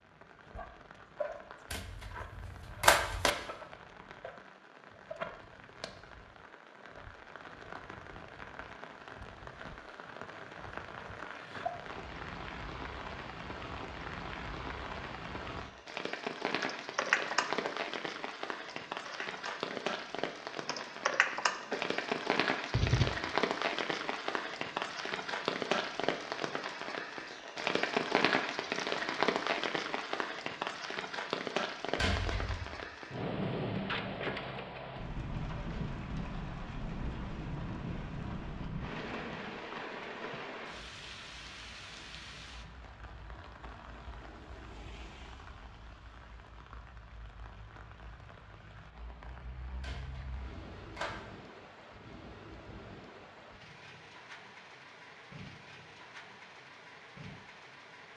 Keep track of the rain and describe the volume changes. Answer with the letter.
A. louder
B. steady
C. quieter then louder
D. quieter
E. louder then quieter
E.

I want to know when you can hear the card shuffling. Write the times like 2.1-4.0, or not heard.
1.7-3.3, 31.9-32.7, 49.8-51.1.